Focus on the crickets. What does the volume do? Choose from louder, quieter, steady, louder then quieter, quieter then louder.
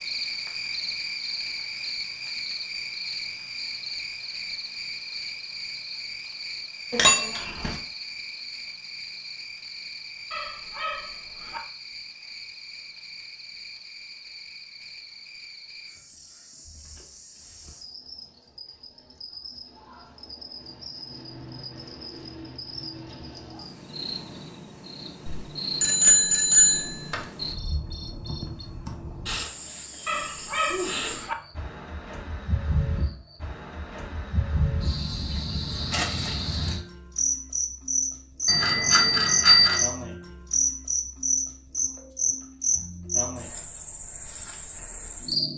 quieter then louder.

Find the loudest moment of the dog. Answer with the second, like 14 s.
31 s.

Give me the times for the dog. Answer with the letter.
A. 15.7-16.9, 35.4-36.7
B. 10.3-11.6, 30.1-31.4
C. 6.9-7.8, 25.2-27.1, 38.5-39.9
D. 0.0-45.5
B.